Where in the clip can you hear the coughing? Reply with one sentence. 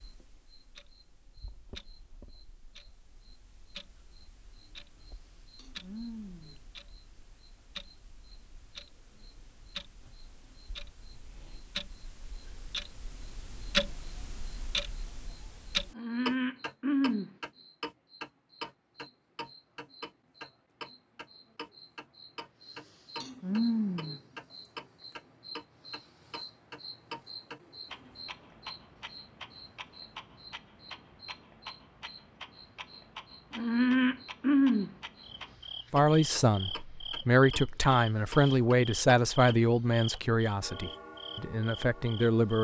You can't hear the coughing here.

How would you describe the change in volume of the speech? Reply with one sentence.
The volume of the speech goes down.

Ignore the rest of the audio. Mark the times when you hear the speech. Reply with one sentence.
You can hear the speech from 35.9 to 42.5 s.